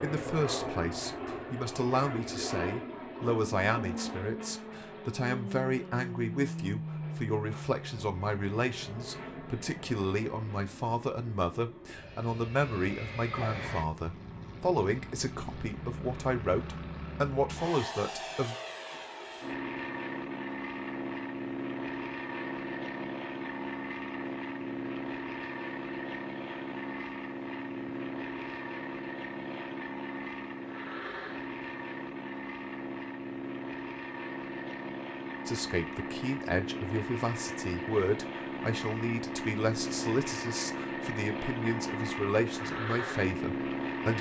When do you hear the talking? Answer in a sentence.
The talking can be heard from 0.0 to 18.6 s and from 35.5 to 44.1 s.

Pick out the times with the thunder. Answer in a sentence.
You can't hear the thunder here.